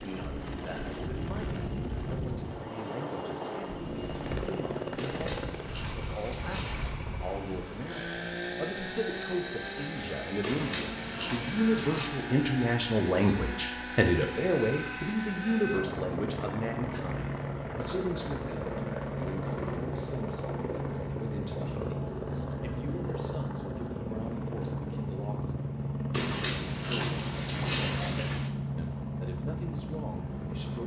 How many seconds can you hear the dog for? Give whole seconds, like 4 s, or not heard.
6 s.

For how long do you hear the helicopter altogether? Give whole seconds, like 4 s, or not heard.
31 s.